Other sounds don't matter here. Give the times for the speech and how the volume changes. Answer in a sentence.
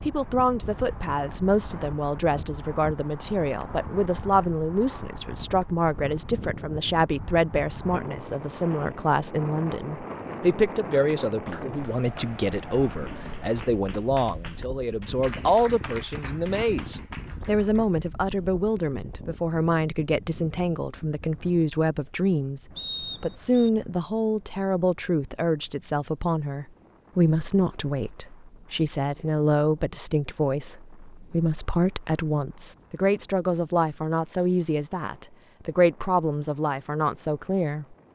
You can hear the speech from 0.0 to 38.1 s, at a steady volume.